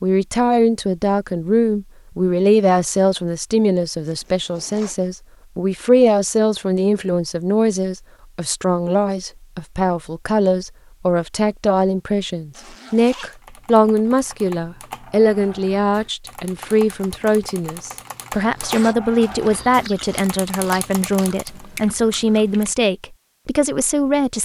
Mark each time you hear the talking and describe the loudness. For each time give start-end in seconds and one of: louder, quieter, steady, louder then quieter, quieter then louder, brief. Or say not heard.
0.0-24.4 steady.